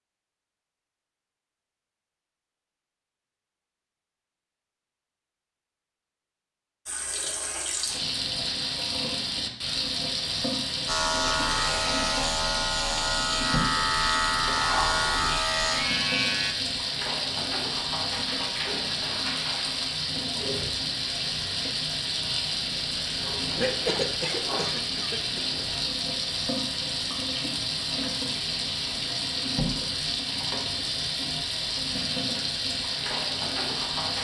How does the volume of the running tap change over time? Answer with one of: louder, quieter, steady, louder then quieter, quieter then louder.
steady.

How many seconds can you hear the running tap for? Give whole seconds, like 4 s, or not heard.
27 s.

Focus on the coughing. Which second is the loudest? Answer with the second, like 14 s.
24 s.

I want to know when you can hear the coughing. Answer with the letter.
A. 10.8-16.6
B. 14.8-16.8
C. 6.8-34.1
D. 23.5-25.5
D.